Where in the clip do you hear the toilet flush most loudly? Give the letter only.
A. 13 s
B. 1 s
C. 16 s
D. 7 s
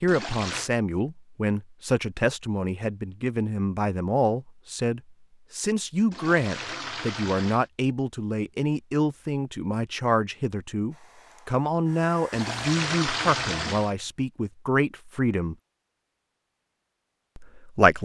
A.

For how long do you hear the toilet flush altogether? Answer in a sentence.
You can hear the toilet flush for 4 seconds altogether.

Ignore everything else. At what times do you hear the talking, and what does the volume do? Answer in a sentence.
The talking can be heard from 0.0 to 15.6 s, at a steady volume; and briefly from 17.4 to 18.0 s.